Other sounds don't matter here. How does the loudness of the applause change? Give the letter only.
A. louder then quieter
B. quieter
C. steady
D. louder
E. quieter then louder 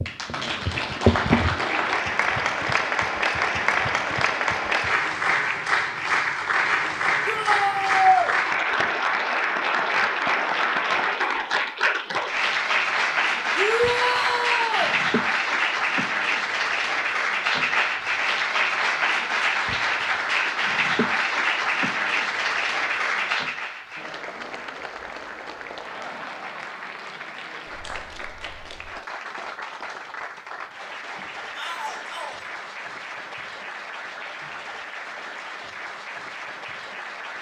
B.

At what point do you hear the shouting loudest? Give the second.
8 s.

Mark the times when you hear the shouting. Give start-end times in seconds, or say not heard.
7.2-8.3, 13.6-14.9, 31.6-32.5.